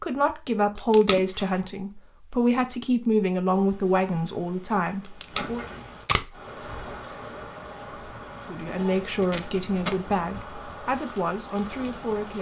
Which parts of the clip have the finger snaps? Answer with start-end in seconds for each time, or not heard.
not heard.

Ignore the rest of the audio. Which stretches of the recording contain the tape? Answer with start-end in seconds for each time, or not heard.
0.8-1.4, 5.2-6.3, 9.0-10.0.